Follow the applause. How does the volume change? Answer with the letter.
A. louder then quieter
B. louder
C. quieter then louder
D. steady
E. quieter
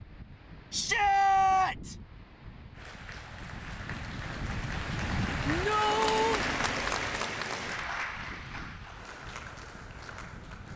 A.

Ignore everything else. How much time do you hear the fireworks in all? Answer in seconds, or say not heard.
not heard.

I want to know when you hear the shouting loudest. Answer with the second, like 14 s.
1 s.